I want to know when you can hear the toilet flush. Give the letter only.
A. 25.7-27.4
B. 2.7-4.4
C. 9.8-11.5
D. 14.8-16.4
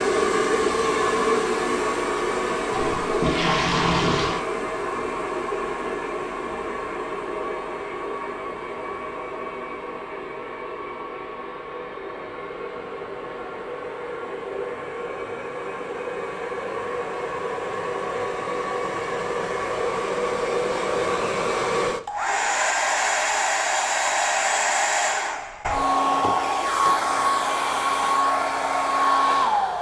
B.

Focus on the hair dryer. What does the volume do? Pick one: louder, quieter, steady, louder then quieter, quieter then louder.
quieter then louder.